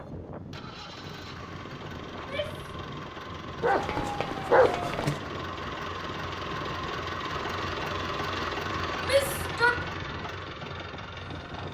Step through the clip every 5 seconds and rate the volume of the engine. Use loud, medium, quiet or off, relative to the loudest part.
medium, loud, medium.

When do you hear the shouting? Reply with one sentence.
The shouting can be heard from 2.1 to 2.7 s and from 9.0 to 9.8 s.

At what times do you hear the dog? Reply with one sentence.
You can hear the dog from 3.6 to 5.2 s.